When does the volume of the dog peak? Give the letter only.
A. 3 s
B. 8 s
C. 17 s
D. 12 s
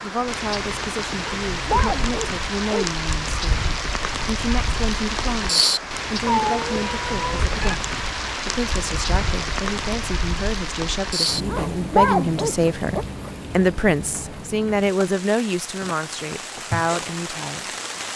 D.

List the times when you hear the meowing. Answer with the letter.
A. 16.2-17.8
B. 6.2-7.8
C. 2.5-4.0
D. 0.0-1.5
B.